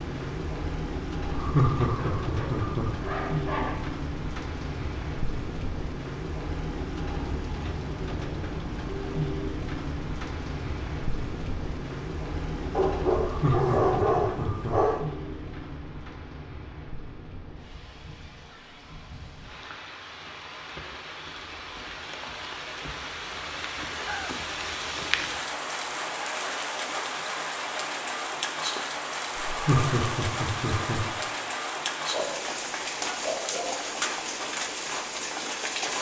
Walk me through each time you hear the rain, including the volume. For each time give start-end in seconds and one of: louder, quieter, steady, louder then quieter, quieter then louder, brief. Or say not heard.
0.0-35.9 quieter then louder.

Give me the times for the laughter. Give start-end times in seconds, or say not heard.
1.3-2.9, 13.2-15.0, 29.4-31.1.